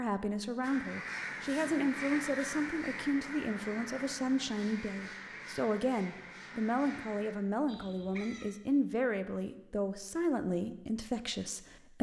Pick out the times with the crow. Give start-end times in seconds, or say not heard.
0.6-8.4.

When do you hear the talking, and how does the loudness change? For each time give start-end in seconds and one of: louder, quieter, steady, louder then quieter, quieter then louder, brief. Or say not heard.
0.0-11.9 steady.